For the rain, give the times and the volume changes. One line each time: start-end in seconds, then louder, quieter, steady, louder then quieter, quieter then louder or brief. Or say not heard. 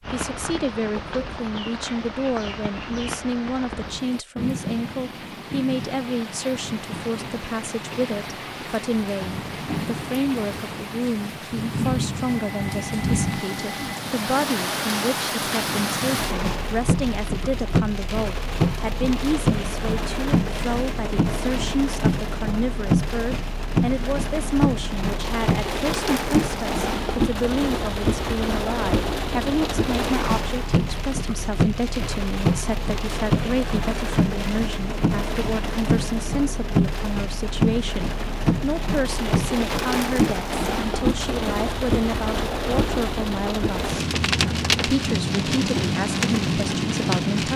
0.0-47.5 louder.